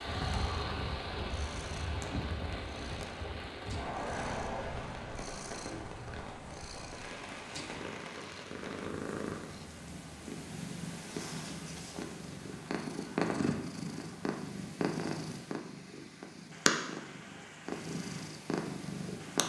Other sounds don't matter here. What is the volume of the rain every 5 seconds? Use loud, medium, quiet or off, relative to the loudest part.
loud, medium, quiet, quiet.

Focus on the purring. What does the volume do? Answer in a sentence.
The loudness of the purring goes up.